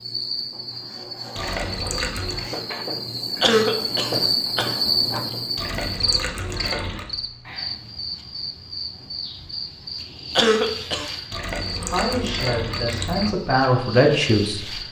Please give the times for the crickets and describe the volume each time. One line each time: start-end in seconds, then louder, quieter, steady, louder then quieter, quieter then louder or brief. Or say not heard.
0.0-14.8 louder then quieter.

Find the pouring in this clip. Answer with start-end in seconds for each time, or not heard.
1.4-2.5, 5.5-7.1, 11.3-13.3.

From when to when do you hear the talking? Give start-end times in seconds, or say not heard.
11.8-14.8.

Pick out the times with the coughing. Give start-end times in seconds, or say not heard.
3.4-5.2, 10.3-11.1.